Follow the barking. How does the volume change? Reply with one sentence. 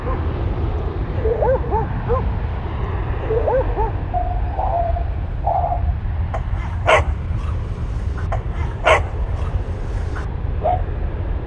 The volume of the barking stays about the same.